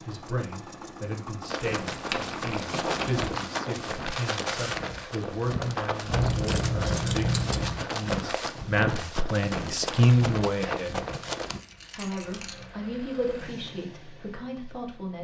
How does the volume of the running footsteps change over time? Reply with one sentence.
The volume of the running footsteps stays about the same.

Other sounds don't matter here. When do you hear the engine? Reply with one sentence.
The engine can be heard from 0.0 to 3.9 s and from 12.2 to 15.1 s.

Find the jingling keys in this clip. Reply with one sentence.
The jingling keys can be heard from 1.6 to 3.4 s, from 6.1 to 7.8 s and from 10.8 to 12.7 s.